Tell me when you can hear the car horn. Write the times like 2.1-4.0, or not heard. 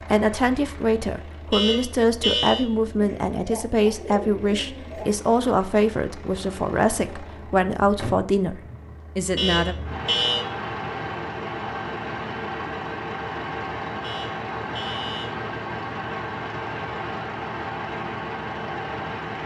1.5-2.6, 9.3-10.4, 14.0-15.3.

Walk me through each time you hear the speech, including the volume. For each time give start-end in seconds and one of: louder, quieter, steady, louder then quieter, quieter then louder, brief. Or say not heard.
0.1-9.8 steady.